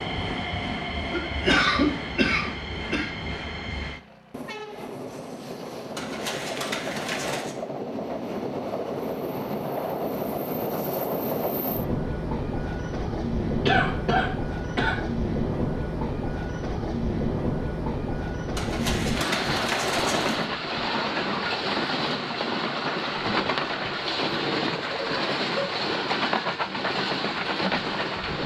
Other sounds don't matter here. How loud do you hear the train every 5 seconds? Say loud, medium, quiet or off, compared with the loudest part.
medium, medium, loud, loud, loud, loud.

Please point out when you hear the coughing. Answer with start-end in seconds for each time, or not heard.
1.1-3.1, 13.7-15.0, 25.4-25.9.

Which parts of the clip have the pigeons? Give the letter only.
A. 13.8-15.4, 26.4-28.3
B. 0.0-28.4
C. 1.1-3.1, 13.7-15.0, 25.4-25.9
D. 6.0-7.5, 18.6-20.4
D.